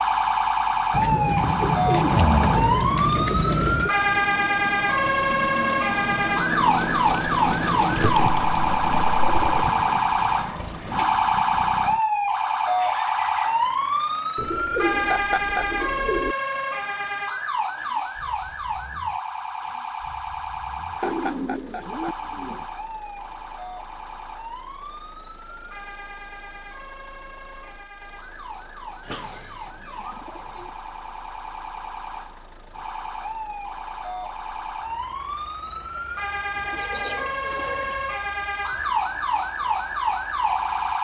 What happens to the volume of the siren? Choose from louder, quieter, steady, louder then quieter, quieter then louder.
quieter then louder.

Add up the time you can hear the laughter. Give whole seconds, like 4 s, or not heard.
2 s.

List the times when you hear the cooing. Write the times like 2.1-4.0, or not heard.
0.9-3.9, 8.2-9.7, 14.3-16.4, 21.0-22.6, 29.0-30.7, 36.5-38.1.